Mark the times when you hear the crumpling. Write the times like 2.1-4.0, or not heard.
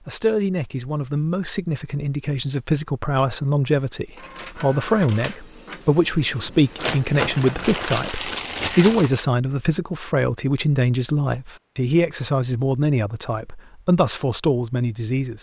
6.8-9.2.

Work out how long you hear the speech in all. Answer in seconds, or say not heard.
15 s.